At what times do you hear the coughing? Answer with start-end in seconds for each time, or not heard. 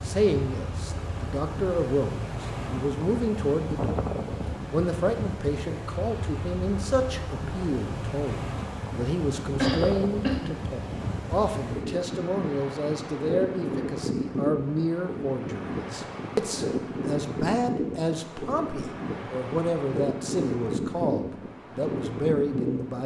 9.6-10.5.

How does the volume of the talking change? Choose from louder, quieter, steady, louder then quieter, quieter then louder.
steady.